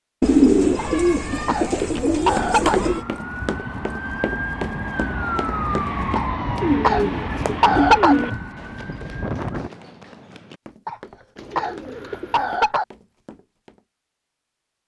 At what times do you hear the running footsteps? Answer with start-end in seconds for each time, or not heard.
1.8-13.8.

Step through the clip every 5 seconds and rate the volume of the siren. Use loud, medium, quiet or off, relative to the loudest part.
loud, loud, off.